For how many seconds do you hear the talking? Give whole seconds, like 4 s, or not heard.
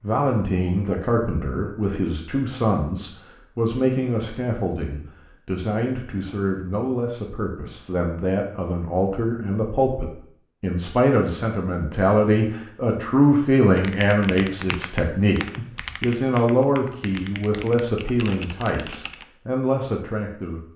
21 s.